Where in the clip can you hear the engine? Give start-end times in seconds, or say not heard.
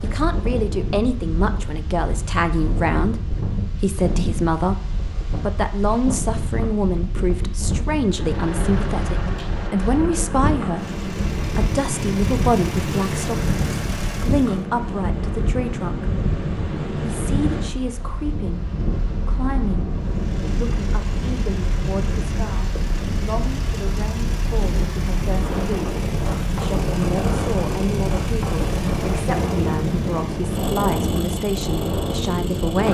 8.0-14.7, 19.9-32.9.